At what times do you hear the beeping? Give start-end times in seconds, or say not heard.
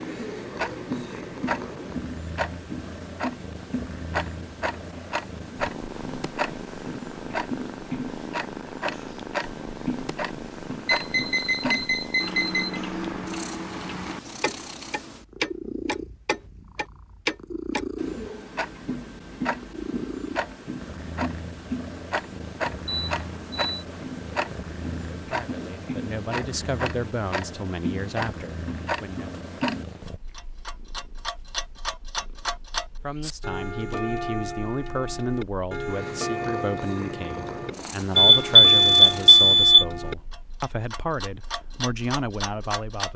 10.8-12.8, 22.9-23.9, 38.1-39.9.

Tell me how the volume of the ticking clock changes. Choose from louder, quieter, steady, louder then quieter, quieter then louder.
steady.